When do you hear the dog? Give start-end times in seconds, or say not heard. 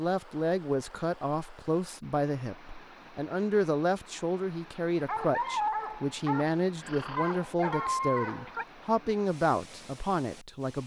5.0-8.7.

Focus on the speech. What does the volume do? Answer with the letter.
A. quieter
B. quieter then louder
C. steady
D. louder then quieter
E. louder
C.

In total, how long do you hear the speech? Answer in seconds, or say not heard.
11 s.